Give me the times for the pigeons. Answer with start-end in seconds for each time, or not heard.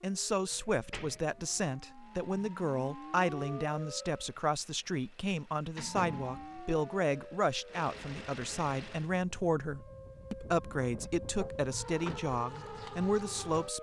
not heard.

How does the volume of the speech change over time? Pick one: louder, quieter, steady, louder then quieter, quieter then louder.
steady.